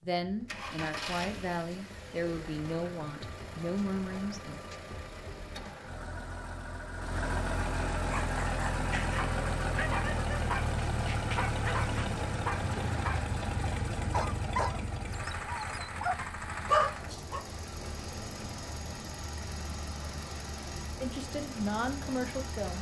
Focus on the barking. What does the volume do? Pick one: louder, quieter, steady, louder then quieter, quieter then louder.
louder.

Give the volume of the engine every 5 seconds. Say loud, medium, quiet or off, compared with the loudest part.
medium, loud, loud, medium, medium.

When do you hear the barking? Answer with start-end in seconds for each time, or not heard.
8.1-17.4.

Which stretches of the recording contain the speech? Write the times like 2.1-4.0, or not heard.
0.0-4.6, 21.0-22.7.